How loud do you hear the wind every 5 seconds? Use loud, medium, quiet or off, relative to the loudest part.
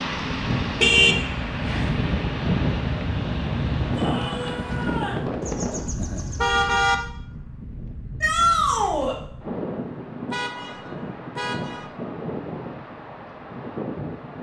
loud, medium, medium.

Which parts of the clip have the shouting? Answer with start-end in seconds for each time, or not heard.
4.0-5.2, 8.2-9.2.